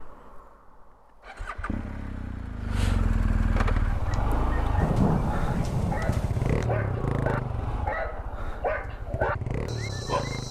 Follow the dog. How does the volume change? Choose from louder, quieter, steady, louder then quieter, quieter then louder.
louder.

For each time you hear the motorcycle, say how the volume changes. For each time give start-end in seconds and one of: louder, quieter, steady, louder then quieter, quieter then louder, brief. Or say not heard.
0.0-10.4 louder then quieter.